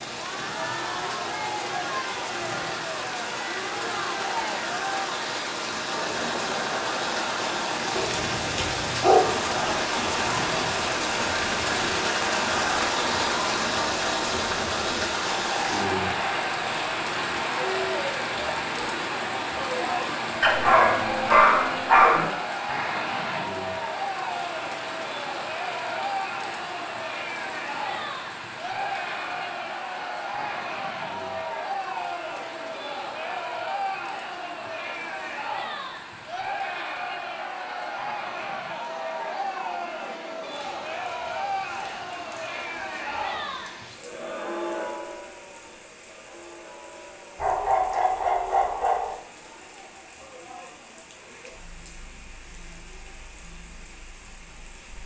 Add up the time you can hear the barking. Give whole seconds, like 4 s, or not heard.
5 s.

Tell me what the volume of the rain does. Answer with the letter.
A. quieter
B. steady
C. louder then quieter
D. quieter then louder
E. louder
A.